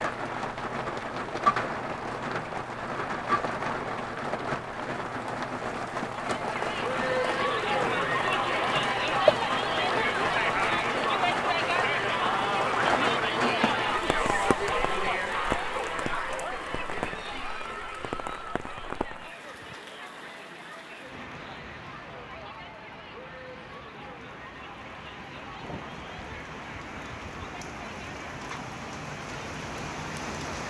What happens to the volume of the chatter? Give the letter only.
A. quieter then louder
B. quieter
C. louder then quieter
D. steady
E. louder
B.